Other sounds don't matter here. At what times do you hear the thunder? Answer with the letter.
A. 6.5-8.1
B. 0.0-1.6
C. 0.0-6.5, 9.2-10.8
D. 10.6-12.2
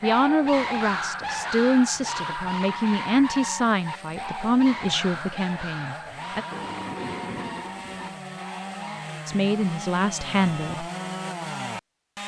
A.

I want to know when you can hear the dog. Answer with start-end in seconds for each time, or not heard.
0.0-9.2.